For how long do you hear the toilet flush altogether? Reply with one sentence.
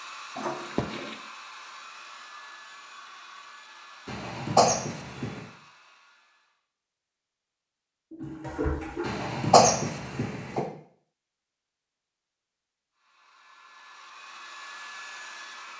The toilet flush can be heard for 2 seconds in total.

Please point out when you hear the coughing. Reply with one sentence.
The coughing can be heard from 4.0 to 5.4 s and from 9.0 to 10.7 s.